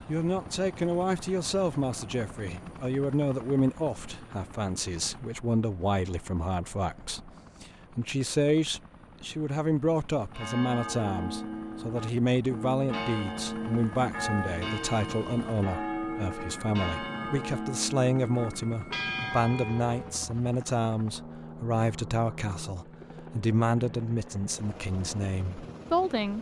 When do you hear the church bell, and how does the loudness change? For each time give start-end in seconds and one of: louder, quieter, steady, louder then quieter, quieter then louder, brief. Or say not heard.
10.3-20.1 steady.